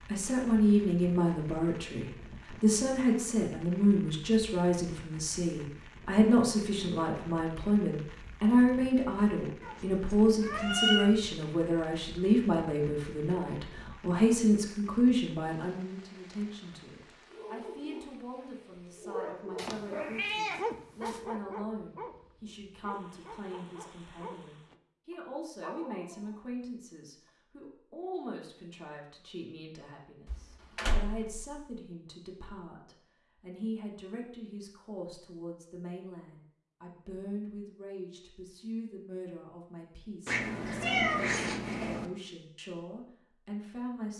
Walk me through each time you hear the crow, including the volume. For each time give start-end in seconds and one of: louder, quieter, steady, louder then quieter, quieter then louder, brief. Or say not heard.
not heard.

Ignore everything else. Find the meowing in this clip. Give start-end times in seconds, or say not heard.
9.6-11.1, 19.6-21.2, 40.2-42.0.